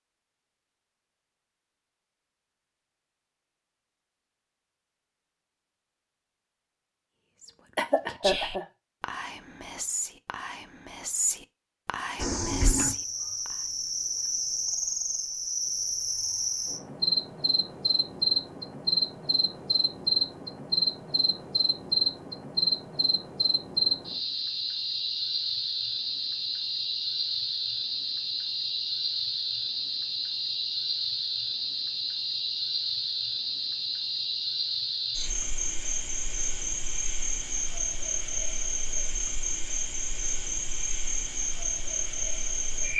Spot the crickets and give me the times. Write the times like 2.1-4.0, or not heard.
12.2-42.9.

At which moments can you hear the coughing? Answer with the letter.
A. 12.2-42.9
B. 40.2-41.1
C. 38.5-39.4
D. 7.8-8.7
D.